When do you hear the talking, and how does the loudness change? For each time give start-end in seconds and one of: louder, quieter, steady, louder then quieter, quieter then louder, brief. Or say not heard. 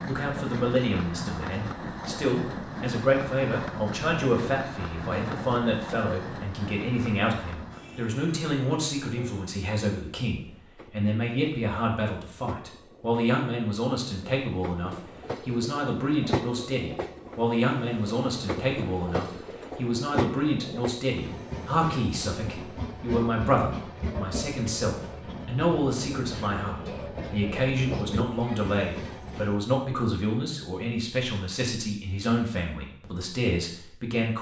0.1-34.3 steady.